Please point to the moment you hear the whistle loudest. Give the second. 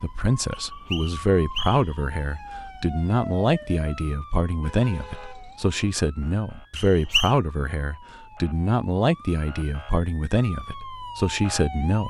7 s.